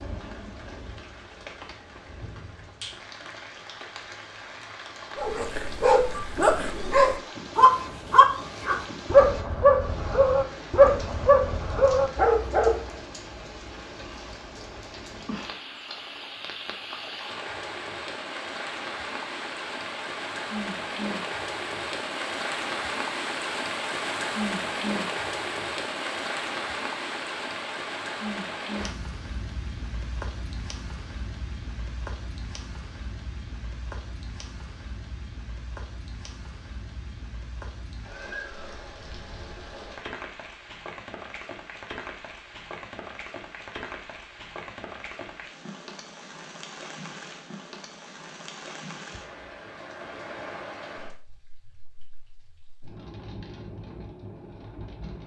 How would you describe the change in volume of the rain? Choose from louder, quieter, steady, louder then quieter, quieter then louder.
louder then quieter.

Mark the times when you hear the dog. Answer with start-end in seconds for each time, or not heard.
5.2-12.8.